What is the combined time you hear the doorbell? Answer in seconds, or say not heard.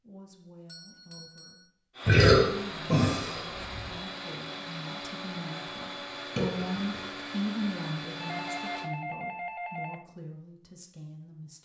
3 s.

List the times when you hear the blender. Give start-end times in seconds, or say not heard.
1.9-8.9.